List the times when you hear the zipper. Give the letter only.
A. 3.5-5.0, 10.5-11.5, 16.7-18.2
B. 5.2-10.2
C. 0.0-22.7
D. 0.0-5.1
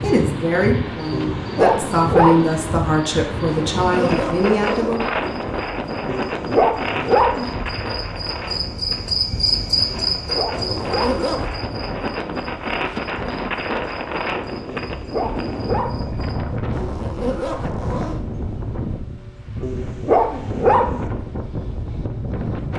A.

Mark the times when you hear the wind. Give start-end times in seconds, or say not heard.
0.0-22.7.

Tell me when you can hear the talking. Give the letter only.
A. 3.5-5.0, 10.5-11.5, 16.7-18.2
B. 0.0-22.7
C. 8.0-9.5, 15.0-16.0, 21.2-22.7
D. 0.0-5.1
D.